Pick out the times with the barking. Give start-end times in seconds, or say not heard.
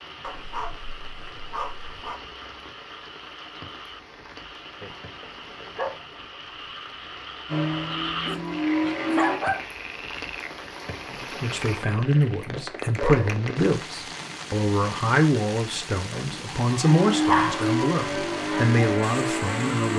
0.2-2.2, 4.8-6.3, 8.2-9.7, 12.2-13.7, 16.1-17.7.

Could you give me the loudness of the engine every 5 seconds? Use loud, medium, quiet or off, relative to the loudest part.
off, loud, off, loud.